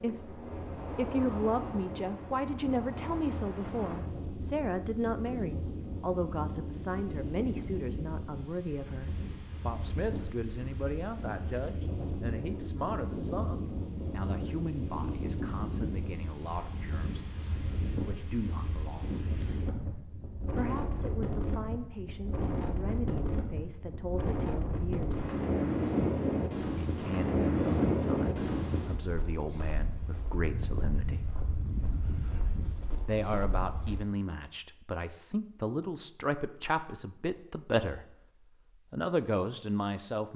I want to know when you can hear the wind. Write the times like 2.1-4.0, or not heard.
0.0-34.0.